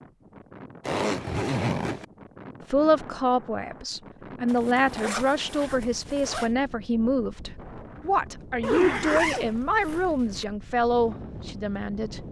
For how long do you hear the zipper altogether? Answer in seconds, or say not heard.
5 s.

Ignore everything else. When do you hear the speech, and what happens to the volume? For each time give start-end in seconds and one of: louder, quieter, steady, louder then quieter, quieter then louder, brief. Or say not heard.
2.7-12.2 steady.